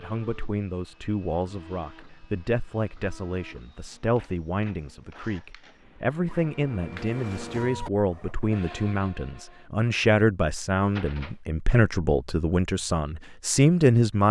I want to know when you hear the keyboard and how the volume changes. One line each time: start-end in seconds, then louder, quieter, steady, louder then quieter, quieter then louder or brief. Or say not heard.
not heard.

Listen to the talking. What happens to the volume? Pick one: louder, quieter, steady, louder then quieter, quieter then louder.
louder.